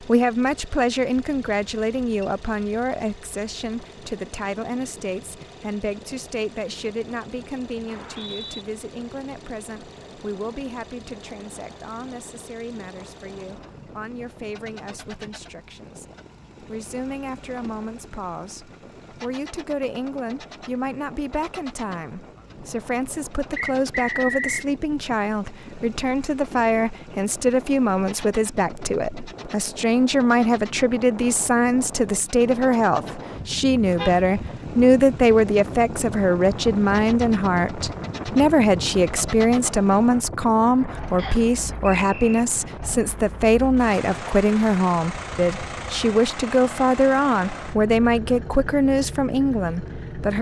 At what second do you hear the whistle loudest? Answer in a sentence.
The loudest moment of the whistle is at 24 seconds.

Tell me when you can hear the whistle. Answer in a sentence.
The whistle can be heard from 7.8 to 8.7 s, from 23.6 to 24.6 s and from 41.1 to 42.4 s.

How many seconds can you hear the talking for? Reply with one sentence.
The talking can be heard for 50 seconds in total.